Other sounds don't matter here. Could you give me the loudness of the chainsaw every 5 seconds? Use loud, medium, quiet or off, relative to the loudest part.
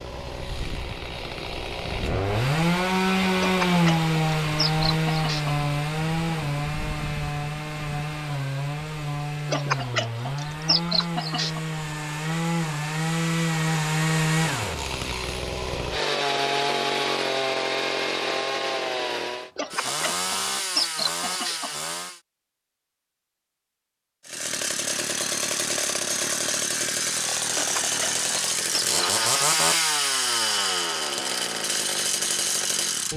loud, loud, loud, loud, medium, loud, loud.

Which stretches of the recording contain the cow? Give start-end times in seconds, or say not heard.
not heard.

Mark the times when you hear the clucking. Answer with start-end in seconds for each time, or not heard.
3.4-5.5, 9.4-11.6, 19.6-21.8, 27.5-29.0.